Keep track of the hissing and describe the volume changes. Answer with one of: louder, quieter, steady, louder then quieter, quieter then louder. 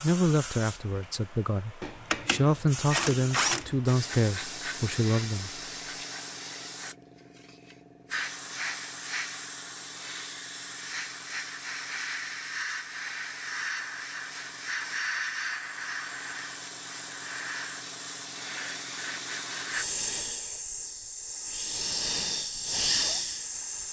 louder.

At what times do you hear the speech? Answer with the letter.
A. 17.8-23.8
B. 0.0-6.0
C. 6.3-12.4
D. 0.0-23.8
B.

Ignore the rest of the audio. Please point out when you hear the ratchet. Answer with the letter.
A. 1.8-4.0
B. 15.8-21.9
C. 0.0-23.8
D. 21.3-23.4
A.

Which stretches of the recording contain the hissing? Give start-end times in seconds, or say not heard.
0.0-23.8.